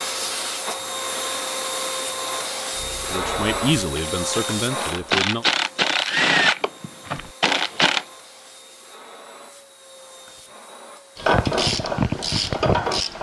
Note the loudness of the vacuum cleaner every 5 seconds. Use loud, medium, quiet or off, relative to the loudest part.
loud, quiet, quiet.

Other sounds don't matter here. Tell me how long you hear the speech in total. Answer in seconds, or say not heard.
2 s.